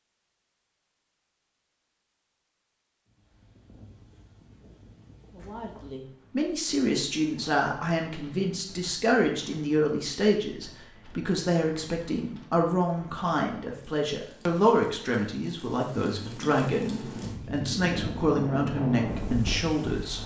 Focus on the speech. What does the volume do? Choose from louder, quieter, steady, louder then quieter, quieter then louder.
steady.